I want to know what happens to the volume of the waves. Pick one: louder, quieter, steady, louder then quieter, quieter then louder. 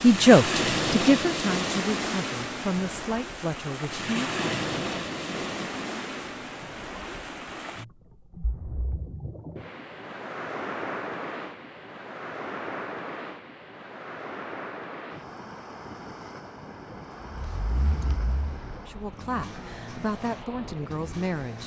quieter.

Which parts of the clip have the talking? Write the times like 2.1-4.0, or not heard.
0.0-4.5, 18.8-21.6.